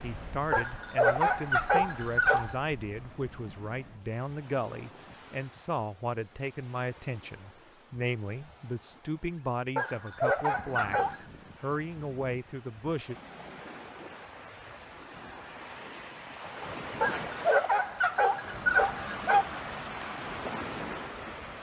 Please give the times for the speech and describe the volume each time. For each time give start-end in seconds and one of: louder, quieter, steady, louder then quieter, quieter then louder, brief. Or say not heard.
0.0-13.2 steady.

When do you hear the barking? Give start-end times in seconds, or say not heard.
0.5-2.5, 9.8-11.2, 17.0-19.6.